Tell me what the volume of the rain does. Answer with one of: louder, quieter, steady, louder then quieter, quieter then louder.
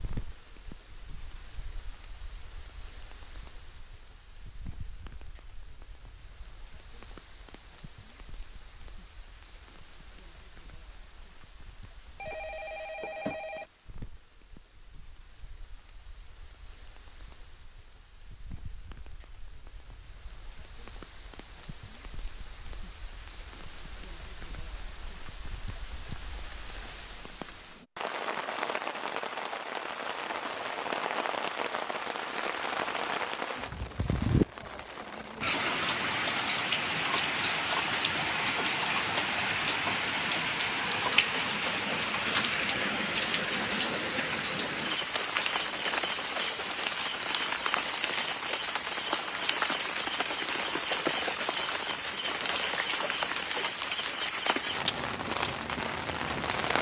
louder.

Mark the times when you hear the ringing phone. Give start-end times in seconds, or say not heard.
12.2-13.7.